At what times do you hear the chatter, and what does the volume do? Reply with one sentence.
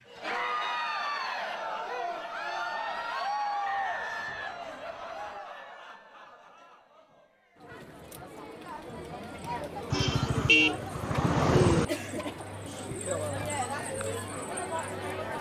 The chatter can be heard from 0.0 to 15.3 s, getting quieter then louder.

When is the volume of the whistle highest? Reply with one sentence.
The loudest moment of the whistle is at 4 seconds.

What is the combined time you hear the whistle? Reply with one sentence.
You can hear the whistle for 2 seconds altogether.